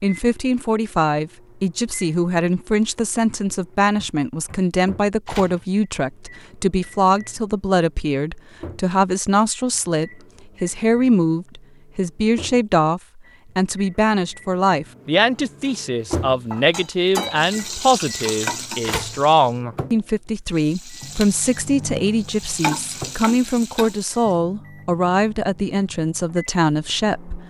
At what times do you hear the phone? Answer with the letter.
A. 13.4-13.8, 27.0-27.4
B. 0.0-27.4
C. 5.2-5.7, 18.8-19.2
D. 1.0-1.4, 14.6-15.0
C.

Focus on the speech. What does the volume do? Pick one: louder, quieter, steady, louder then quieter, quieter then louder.
steady.